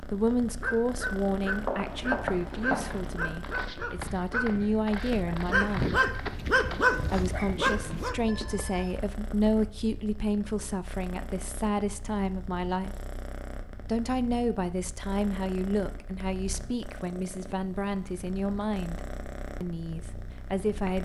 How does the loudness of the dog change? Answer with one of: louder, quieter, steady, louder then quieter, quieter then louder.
louder.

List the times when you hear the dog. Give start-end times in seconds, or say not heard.
0.4-8.2.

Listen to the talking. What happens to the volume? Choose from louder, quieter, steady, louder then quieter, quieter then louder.
steady.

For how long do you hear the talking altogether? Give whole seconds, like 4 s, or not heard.
19 s.